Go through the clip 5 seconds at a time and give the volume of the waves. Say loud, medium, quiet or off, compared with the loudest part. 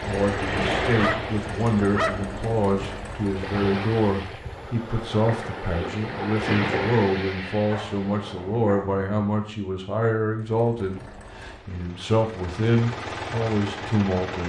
loud, loud, off.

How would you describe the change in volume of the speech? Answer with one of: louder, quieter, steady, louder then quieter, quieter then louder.
steady.